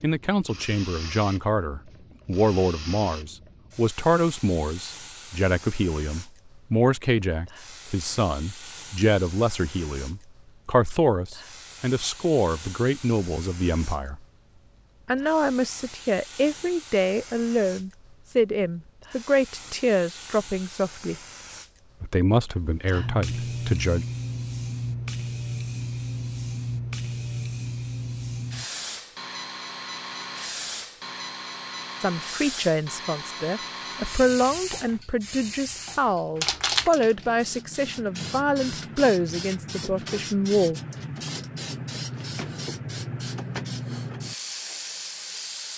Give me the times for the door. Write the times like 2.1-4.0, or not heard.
not heard.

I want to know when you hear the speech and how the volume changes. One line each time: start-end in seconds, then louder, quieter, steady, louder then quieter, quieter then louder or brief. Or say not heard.
0.0-14.2 steady
15.1-21.1 steady
22.0-24.1 brief
32.0-40.8 steady.